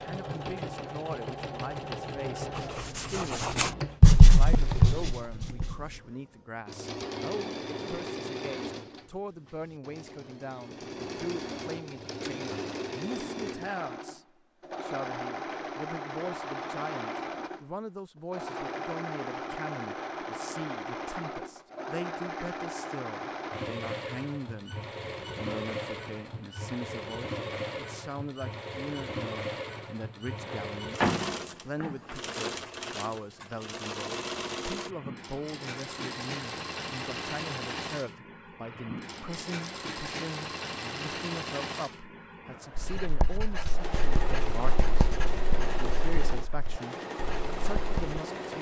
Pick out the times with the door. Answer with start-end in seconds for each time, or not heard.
30.4-32.2.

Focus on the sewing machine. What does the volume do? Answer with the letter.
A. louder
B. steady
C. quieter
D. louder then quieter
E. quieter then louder
B.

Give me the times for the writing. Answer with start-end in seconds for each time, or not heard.
2.5-6.0, 42.8-48.2.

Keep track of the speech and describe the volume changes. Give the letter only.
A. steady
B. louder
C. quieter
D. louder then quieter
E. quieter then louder
A.